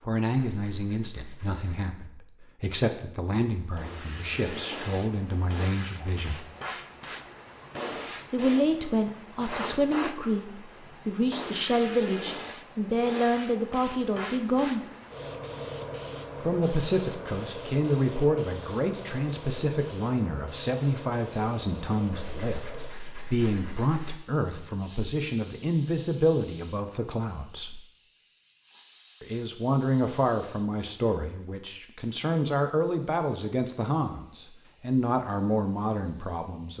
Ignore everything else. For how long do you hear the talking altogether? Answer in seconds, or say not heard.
32 s.